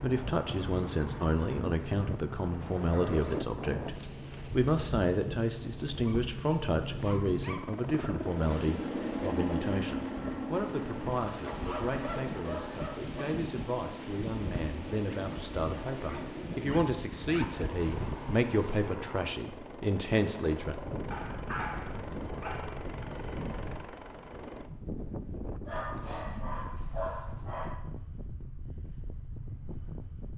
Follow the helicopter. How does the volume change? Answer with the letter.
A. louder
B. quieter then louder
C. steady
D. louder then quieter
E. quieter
D.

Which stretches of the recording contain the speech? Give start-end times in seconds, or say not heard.
0.0-20.8.